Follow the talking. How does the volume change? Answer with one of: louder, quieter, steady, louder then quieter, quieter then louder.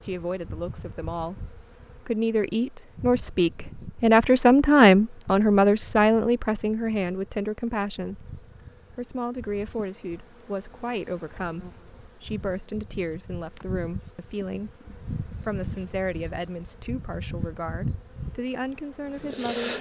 louder then quieter.